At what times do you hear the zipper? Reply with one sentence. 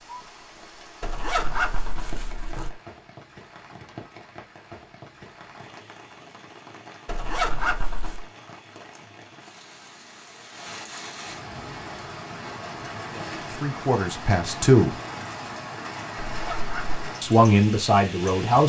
You can hear the zipper from 1.0 to 2.7 s, from 7.0 to 8.2 s and from 16.3 to 17.0 s.